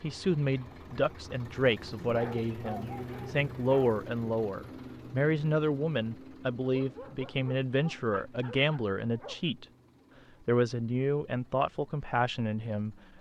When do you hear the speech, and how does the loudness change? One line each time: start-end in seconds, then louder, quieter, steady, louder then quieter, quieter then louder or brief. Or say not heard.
0.0-9.7 steady
10.4-12.9 brief.